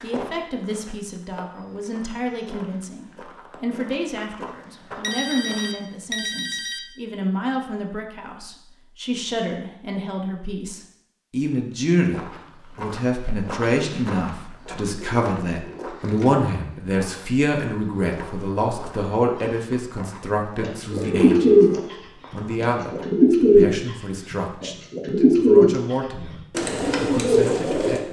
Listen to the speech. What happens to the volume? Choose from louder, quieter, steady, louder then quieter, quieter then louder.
louder then quieter.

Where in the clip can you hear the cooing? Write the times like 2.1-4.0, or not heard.
20.6-28.0.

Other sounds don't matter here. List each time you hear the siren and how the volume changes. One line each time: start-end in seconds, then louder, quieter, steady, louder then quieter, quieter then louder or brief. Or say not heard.
not heard.